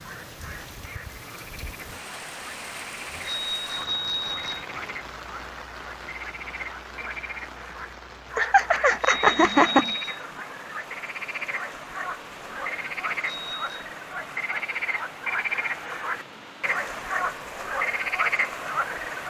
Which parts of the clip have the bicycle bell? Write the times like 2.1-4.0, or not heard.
3.2-4.7, 9.0-10.2, 13.2-13.8.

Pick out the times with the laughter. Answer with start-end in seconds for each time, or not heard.
8.3-9.9.